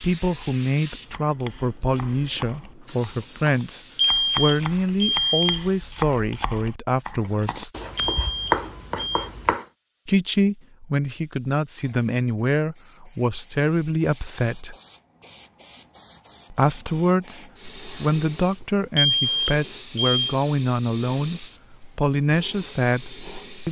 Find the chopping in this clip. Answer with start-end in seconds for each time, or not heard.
0.9-9.7.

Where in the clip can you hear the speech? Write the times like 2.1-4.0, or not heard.
0.0-7.7, 10.1-14.8, 16.5-23.6.